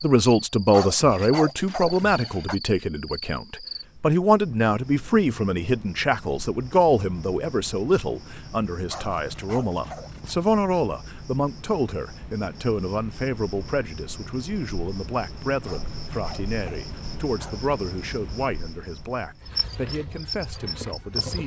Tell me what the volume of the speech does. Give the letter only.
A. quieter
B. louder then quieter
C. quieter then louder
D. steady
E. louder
A.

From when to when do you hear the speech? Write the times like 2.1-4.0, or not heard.
0.0-21.4.